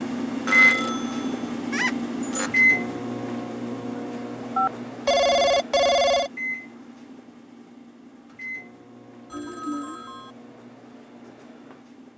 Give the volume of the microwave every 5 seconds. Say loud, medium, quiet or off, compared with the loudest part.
loud, quiet, quiet.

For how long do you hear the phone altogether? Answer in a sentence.
You can hear the phone for 5 seconds altogether.